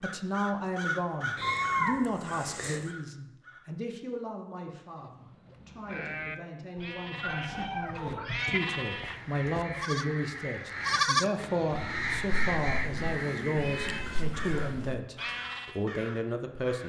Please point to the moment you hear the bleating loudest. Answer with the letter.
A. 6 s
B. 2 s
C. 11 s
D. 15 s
C.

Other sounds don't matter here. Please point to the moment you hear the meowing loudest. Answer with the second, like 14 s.
2 s.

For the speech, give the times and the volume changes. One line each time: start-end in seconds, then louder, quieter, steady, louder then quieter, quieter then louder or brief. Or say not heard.
0.0-16.8 quieter then louder.